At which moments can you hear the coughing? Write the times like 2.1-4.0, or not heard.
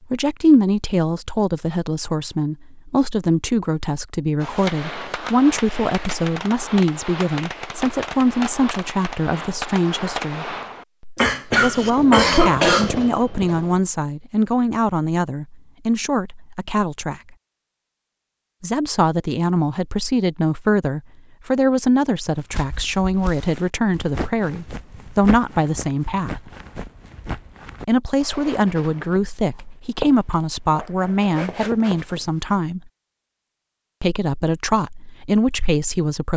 11.2-12.9.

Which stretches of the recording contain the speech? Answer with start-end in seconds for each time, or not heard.
0.1-10.6, 11.4-17.2, 18.6-26.5, 27.9-32.9, 34.0-36.3.